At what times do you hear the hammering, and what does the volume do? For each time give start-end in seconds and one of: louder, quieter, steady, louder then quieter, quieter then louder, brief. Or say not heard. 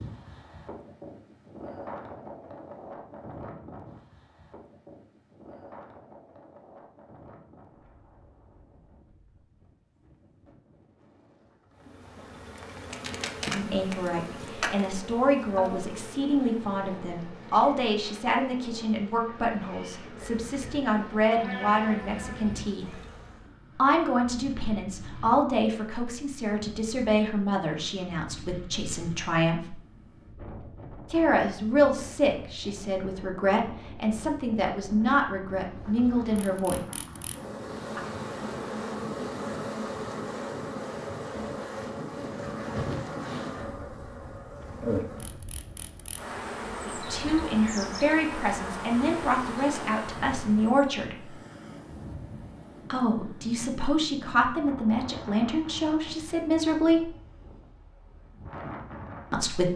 not heard.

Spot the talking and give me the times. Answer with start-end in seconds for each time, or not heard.
13.5-22.9, 23.7-29.8, 31.1-36.8, 46.9-51.4, 52.9-57.1, 59.3-59.7.